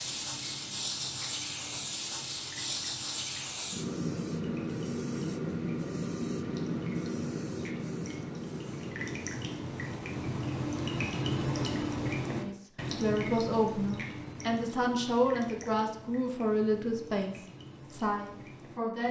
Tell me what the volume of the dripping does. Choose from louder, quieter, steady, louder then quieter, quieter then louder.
louder then quieter.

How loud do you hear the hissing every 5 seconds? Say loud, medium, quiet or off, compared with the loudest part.
loud, loud, off, off.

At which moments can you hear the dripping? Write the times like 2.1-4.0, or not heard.
0.0-19.0.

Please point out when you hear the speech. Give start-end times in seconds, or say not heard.
12.3-19.0.